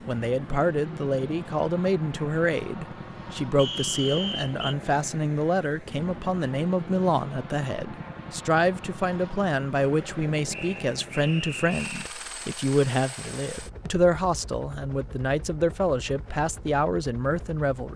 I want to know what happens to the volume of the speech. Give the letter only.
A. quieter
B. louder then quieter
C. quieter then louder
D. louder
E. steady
E.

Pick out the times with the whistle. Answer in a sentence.
You can hear the whistle from 3.5 to 4.8 s and from 10.5 to 12.2 s.